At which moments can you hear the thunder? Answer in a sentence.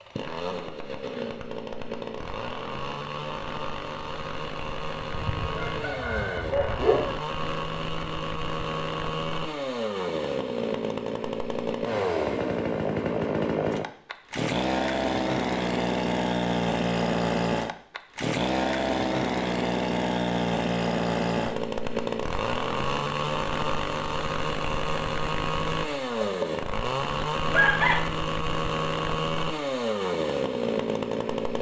The thunder can't be heard in this clip.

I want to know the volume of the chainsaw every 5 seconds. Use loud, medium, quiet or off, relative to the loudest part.
medium, medium, loud, loud, loud, loud, loud.